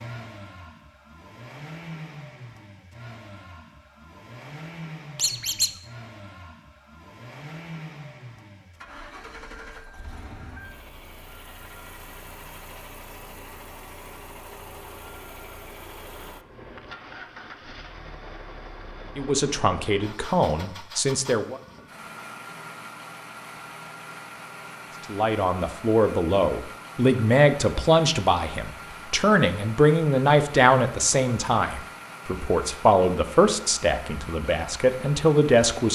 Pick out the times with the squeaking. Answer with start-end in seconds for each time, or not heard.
5.2-5.7.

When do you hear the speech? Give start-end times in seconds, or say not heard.
19.1-21.6, 25.1-35.9.